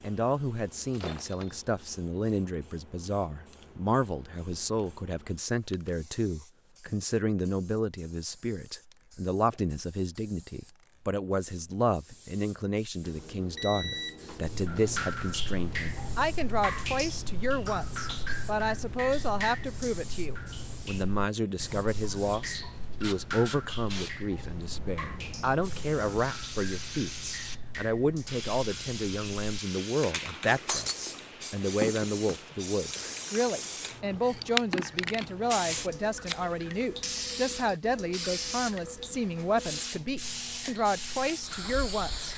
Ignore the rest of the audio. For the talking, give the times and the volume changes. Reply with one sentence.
You can hear the talking from 0.0 to 42.3 s, at a steady volume.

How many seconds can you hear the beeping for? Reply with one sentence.
You can hear the beeping for 2 seconds altogether.